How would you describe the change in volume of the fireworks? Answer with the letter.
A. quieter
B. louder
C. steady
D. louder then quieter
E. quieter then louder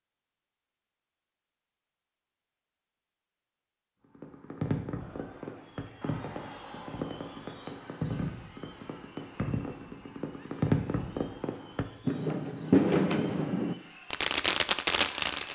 B.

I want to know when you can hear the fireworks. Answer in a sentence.
You can hear the fireworks from 4.2 to 15.5 s.